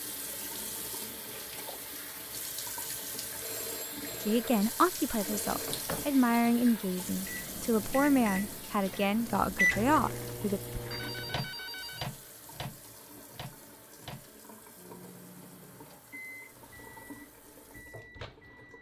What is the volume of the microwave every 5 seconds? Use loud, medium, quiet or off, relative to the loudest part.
off, loud, medium, quiet.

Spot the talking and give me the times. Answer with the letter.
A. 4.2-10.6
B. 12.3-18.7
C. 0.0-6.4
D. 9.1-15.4
A.